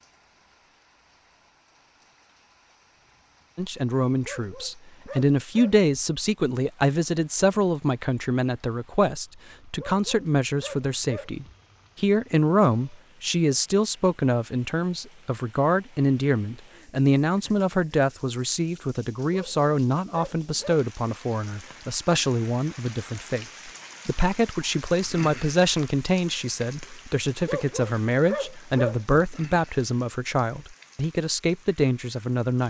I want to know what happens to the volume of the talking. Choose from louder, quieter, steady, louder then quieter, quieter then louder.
steady.